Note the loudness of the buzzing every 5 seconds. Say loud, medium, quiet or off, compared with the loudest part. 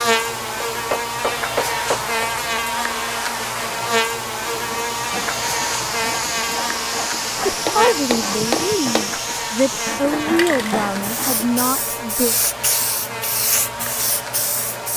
loud, loud, medium.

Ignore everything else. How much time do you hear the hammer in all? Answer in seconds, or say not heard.
3 s.